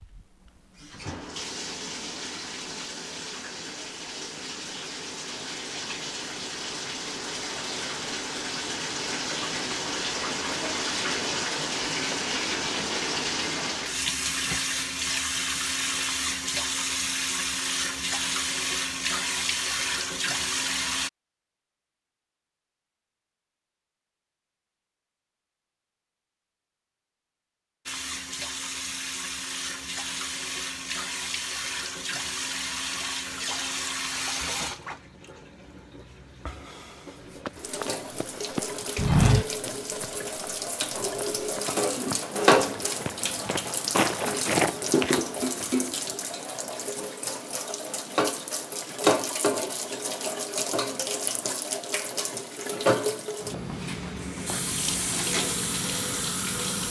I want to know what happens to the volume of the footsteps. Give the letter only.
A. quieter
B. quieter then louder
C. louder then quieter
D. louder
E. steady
B.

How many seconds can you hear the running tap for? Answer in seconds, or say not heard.
50 s.